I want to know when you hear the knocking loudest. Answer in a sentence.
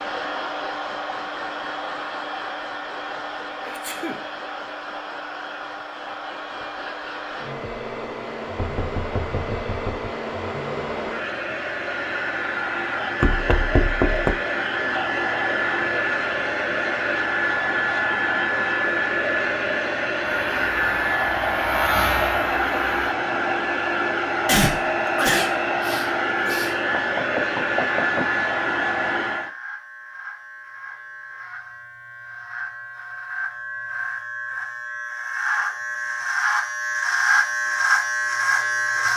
The loudest moment of the knocking is at 14 seconds.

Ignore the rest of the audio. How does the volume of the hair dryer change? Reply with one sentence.
The volume of the hair dryer goes up.